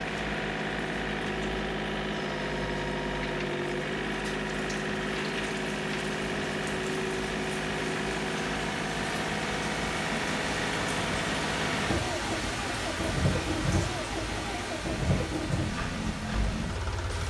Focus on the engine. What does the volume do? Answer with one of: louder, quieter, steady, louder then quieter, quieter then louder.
steady.